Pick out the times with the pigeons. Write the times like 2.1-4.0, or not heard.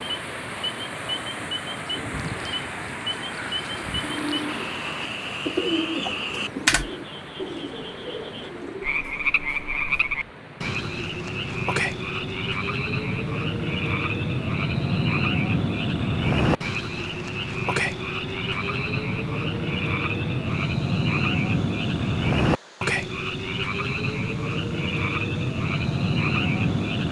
1.8-9.1.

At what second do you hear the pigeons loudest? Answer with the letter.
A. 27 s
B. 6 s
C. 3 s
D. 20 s
B.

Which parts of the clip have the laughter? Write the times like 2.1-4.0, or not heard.
not heard.